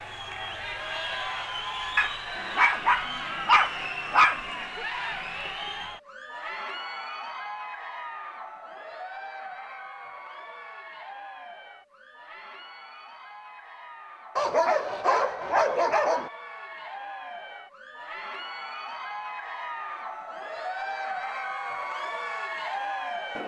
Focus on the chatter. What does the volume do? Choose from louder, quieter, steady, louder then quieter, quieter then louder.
quieter then louder.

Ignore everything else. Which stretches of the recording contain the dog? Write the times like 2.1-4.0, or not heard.
1.9-4.8, 14.3-16.3.